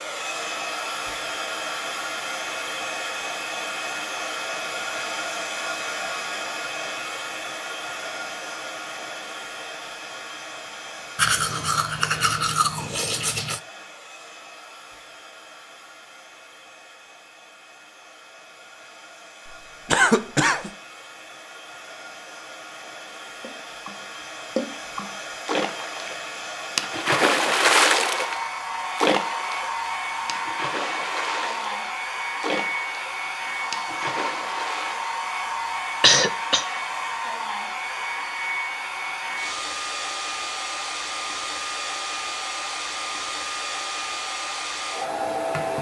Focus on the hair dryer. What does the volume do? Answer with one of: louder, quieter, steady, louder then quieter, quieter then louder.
quieter then louder.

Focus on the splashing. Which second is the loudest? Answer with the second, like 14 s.
28 s.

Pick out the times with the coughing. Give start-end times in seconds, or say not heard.
19.9-20.7, 36.0-36.6.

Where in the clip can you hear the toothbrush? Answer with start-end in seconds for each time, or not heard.
11.2-13.6.